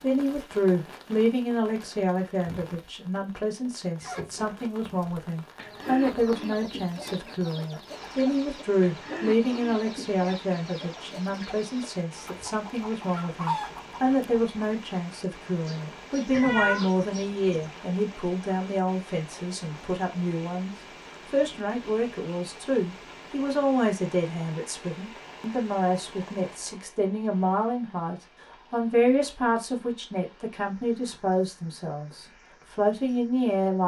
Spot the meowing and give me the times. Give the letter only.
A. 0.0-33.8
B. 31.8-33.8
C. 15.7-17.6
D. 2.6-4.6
C.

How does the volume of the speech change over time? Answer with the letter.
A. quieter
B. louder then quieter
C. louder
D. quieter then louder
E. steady
E.